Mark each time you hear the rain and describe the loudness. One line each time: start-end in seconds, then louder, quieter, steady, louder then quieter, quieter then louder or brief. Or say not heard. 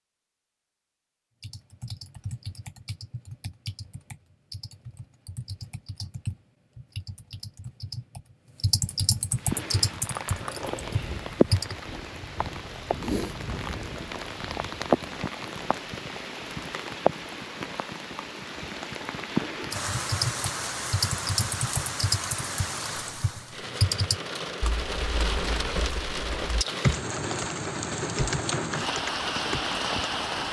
9.3-30.4 steady.